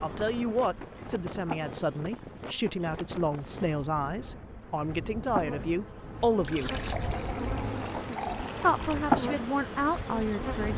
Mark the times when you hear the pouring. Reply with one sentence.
The pouring can be heard from 6.4 to 9.1 s.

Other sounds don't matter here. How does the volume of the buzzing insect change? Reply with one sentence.
The loudness of the buzzing insect goes down, then up.